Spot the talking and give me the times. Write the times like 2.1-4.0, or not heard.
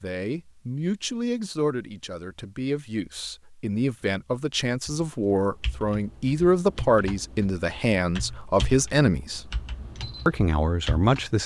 0.0-9.5, 10.2-11.4.